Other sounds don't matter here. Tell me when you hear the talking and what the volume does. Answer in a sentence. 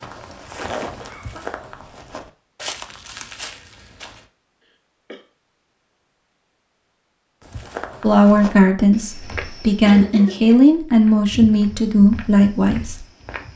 You can hear the talking from 8.0 to 13.0 s, at a steady volume.